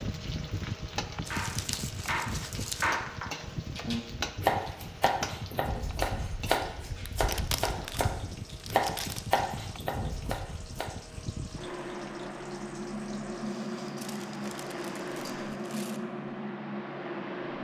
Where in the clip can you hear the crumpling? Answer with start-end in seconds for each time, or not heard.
1.2-2.9, 7.2-9.4, 13.9-16.0.